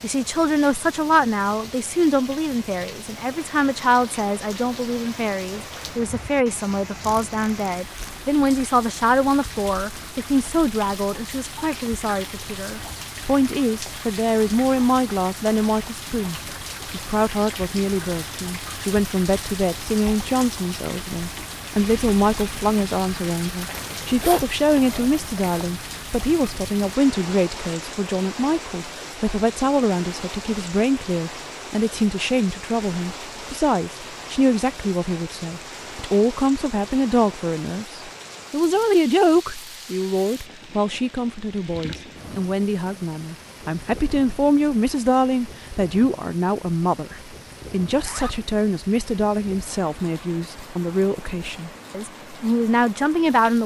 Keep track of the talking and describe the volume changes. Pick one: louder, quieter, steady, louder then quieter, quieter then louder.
steady.